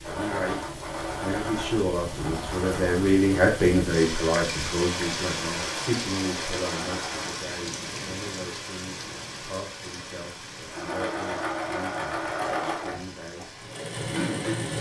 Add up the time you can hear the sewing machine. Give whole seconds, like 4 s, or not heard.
9 s.